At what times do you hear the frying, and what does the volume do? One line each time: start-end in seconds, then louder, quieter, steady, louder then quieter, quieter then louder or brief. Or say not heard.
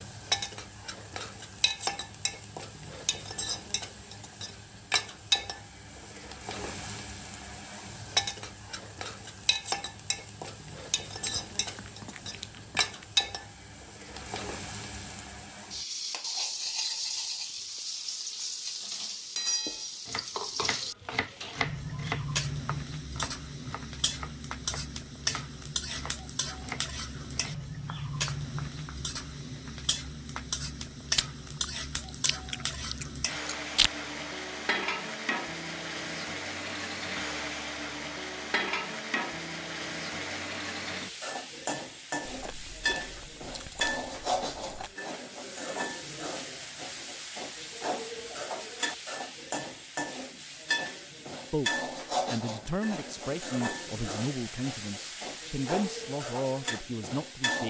0.0-57.6 steady.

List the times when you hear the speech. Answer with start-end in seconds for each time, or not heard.
51.5-57.6.